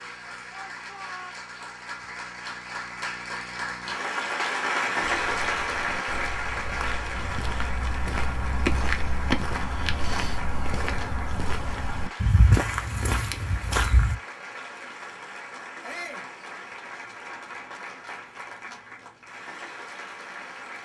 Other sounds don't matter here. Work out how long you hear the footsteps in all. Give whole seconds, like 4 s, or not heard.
9 s.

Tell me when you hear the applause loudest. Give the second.
5 s.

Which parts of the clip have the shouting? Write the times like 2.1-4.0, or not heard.
0.5-1.4, 15.8-16.3.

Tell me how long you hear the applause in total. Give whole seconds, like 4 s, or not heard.
21 s.